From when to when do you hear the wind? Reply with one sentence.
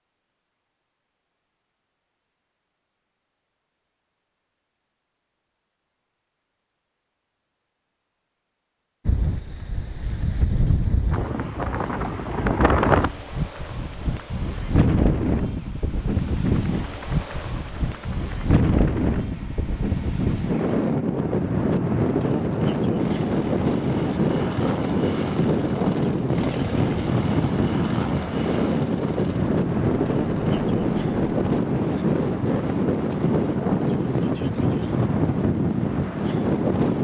The wind can be heard from 9.1 to 36.9 s.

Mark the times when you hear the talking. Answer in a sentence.
You can't hear the talking here.